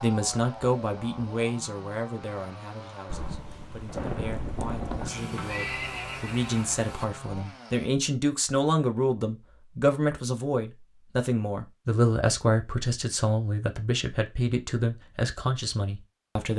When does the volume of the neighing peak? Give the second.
6 s.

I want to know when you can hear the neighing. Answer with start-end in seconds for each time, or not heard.
5.0-7.0.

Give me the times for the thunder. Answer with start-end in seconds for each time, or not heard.
3.0-5.1.